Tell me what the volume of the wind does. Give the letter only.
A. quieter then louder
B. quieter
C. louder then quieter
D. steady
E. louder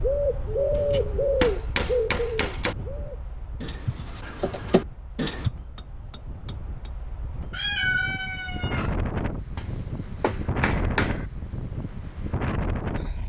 A.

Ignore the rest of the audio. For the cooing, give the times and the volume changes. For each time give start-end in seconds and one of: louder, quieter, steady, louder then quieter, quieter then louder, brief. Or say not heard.
0.0-5.5 quieter then louder.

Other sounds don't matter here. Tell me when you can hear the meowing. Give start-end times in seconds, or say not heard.
7.5-8.9.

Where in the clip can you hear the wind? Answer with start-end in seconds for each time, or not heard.
0.0-13.2.